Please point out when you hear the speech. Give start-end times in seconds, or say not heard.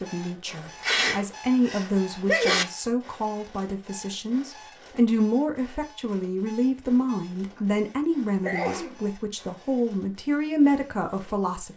0.0-11.7.